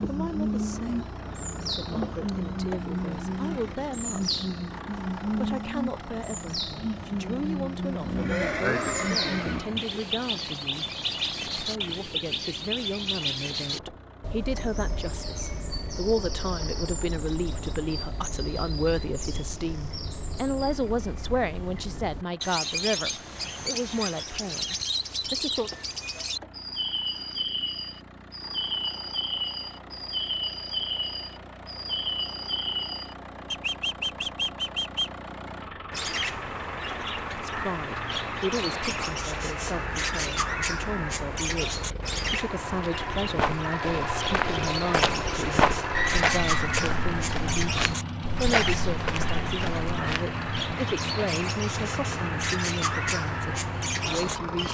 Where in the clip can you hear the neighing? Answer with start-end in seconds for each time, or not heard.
8.0-9.8, 45.9-46.6.